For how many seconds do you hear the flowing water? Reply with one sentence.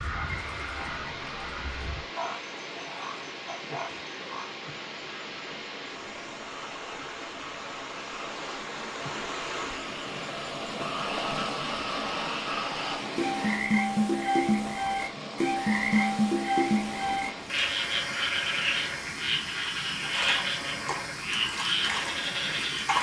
The flowing water can be heard for 23 seconds in total.